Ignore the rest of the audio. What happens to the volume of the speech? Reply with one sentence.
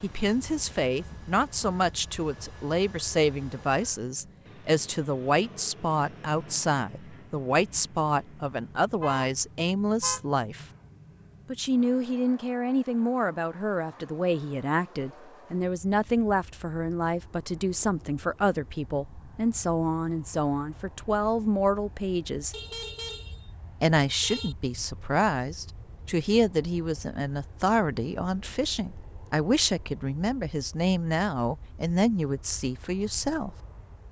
The volume of the speech stays about the same.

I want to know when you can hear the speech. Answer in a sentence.
You can hear the speech from 0.0 to 10.7 s, from 11.4 to 22.6 s and from 23.8 to 33.5 s.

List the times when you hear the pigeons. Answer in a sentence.
The pigeons can't be heard in this clip.